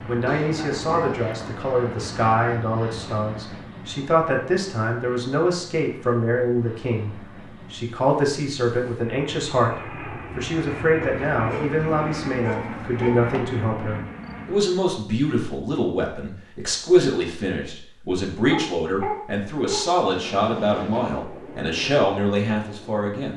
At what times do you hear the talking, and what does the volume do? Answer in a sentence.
You can hear the talking from 0.1 to 23.3 s, at a steady volume.